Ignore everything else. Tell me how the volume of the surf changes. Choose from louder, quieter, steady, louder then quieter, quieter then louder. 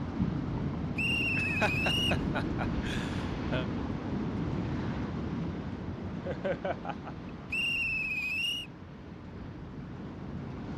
quieter.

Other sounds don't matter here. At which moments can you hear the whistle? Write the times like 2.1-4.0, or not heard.
0.9-2.2, 7.5-8.7.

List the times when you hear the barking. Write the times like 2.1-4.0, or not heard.
not heard.